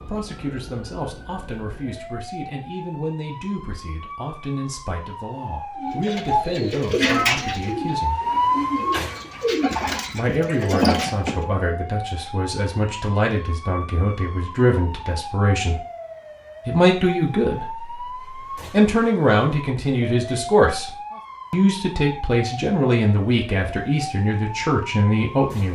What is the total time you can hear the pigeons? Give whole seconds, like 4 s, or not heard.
6 s.